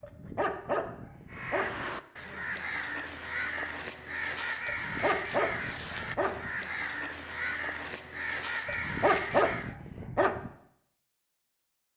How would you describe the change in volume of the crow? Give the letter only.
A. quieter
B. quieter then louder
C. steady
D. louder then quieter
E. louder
C.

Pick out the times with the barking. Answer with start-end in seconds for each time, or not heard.
0.0-1.9, 4.7-6.5, 8.7-10.5.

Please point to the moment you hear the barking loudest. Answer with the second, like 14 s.
9 s.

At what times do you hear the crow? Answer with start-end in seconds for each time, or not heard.
1.3-9.8.